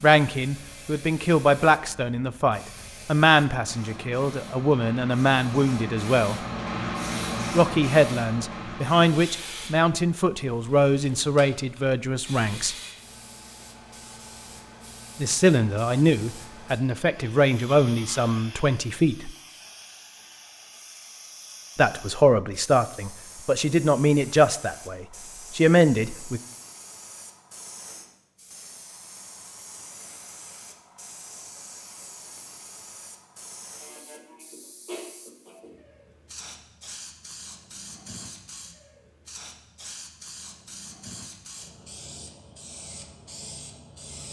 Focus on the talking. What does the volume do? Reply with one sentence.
The loudness of the talking stays about the same.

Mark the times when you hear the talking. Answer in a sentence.
You can hear the talking from 0.0 to 6.4 s, from 7.5 to 12.8 s, from 15.2 to 19.3 s and from 21.8 to 26.4 s.